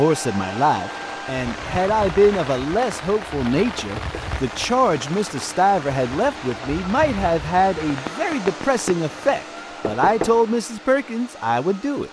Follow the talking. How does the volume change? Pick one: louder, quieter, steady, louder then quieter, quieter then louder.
steady.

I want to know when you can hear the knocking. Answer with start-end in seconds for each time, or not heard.
3.8-4.3, 9.8-10.4.